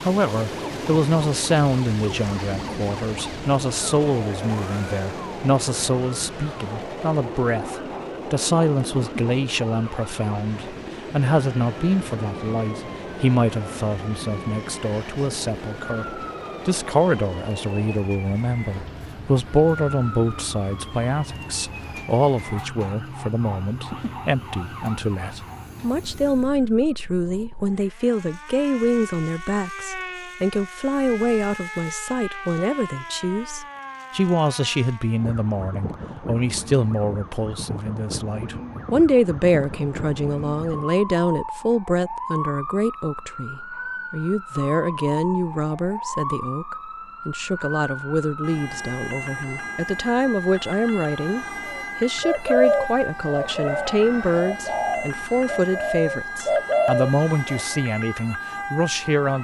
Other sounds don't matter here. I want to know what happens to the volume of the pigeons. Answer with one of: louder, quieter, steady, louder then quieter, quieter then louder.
quieter then louder.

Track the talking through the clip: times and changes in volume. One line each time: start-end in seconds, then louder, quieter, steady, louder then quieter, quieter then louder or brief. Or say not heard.
0.0-59.3 steady.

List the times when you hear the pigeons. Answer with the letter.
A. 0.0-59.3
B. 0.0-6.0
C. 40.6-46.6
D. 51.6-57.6
D.